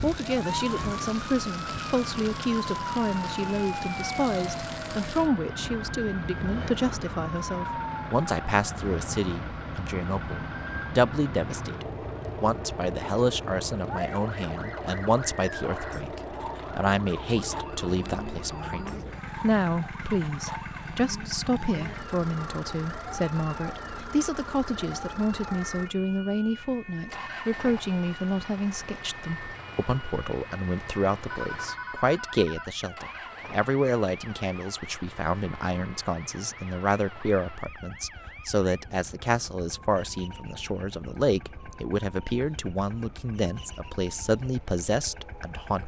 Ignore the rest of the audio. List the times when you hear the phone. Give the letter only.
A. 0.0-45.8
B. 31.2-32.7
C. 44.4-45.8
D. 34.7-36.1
B.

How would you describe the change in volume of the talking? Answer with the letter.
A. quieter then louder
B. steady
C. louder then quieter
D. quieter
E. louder
B.